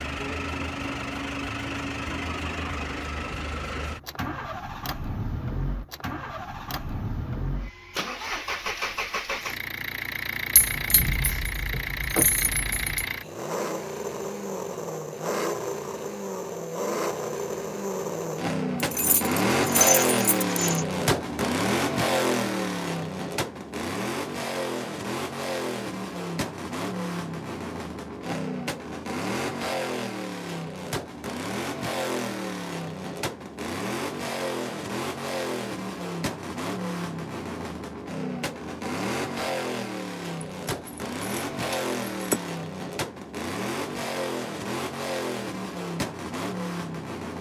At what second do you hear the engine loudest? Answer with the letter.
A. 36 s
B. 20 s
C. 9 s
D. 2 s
B.